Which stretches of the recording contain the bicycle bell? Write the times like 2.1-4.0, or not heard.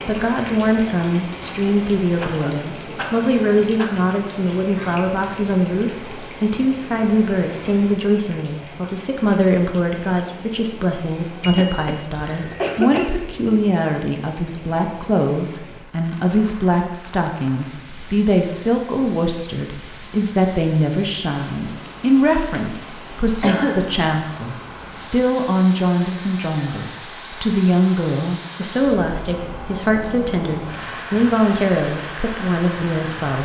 11.4-12.7, 26.0-26.9.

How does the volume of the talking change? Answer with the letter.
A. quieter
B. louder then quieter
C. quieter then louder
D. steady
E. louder
D.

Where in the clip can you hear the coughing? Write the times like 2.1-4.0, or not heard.
2.2-4.2, 11.5-13.1, 23.4-23.9.